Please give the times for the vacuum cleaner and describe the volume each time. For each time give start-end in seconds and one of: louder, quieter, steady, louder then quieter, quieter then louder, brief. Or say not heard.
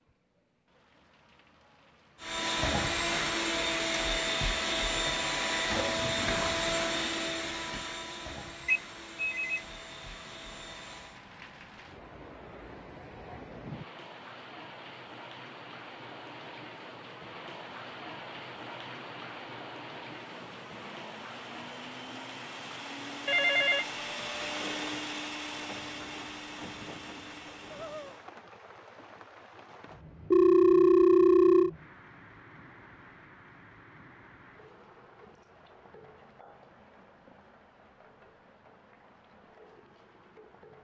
2.2-11.2 quieter
20.1-28.3 louder then quieter.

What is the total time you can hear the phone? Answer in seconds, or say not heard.
3 s.